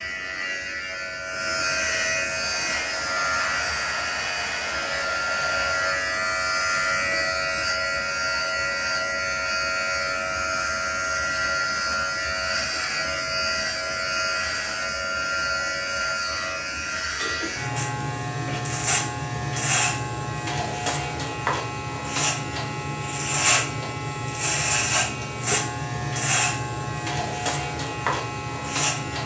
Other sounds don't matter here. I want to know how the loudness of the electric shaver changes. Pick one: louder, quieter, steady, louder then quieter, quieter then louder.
steady.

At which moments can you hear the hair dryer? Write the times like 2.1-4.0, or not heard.
2.2-6.0.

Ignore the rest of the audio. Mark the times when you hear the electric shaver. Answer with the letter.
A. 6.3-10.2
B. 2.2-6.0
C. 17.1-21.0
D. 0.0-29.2
D.